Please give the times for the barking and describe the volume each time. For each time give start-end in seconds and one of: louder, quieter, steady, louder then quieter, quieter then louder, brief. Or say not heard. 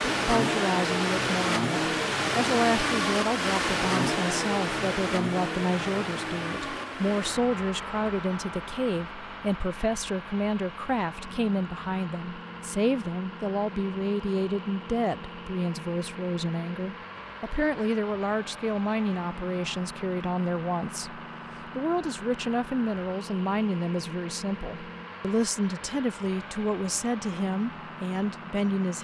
not heard.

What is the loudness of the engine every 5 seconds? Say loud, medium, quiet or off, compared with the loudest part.
loud, medium, quiet, quiet, quiet, quiet.